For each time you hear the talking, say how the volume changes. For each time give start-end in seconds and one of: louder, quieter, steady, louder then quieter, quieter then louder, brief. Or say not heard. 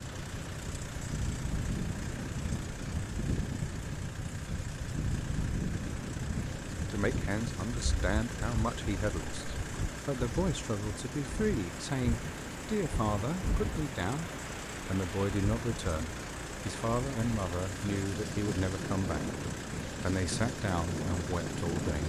6.8-22.0 steady.